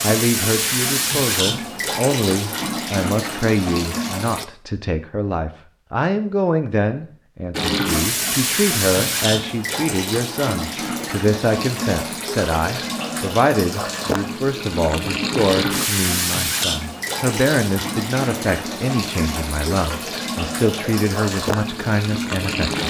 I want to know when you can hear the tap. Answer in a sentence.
The tap can be heard from 0.0 to 4.5 s and from 7.5 to 22.8 s.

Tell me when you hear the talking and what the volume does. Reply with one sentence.
The talking can be heard from 0.0 to 22.8 s, at a steady volume.